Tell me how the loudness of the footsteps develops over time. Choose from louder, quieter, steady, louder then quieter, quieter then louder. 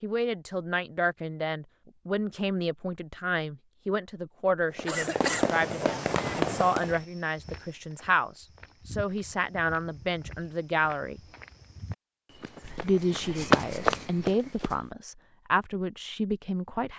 louder.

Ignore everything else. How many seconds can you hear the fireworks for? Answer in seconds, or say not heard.
2 s.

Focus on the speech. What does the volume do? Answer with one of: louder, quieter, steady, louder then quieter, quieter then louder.
steady.